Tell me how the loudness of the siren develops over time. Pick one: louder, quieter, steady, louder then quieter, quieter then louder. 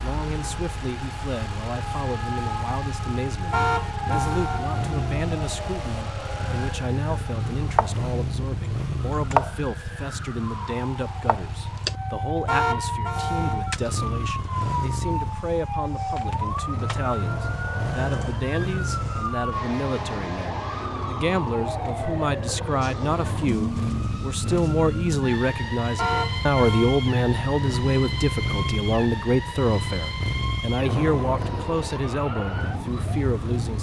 steady.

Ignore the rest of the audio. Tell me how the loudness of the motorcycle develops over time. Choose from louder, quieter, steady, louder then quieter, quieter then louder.
steady.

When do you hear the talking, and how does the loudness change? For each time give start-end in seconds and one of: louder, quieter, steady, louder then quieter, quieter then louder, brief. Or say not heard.
0.0-33.7 louder.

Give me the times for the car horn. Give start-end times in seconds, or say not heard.
3.5-4.8, 12.4-13.7, 25.9-27.1.